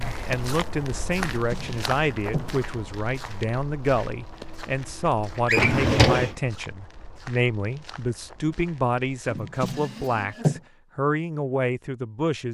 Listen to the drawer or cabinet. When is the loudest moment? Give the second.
6 s.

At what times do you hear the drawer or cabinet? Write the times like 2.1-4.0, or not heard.
1.3-2.5, 5.5-6.3, 9.3-10.6.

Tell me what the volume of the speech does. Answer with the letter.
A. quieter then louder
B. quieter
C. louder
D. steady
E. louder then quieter
D.